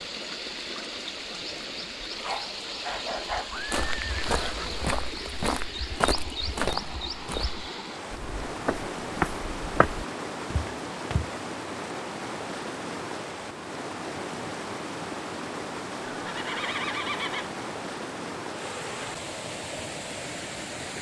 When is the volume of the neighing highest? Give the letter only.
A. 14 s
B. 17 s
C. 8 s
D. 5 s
B.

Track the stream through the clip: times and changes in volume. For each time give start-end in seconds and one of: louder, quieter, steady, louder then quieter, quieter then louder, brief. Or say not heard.
0.0-20.9 steady.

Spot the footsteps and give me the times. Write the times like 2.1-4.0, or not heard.
3.5-11.3.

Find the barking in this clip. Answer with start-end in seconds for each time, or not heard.
2.2-3.5.